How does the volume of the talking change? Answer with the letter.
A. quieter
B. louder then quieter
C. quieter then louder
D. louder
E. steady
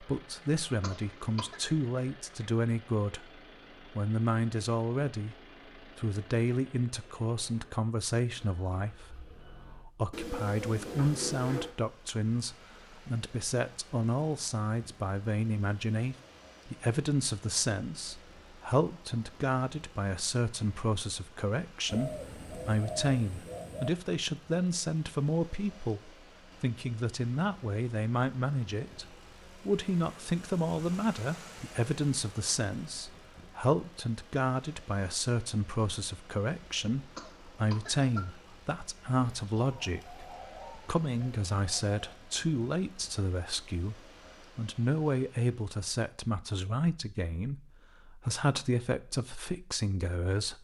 E.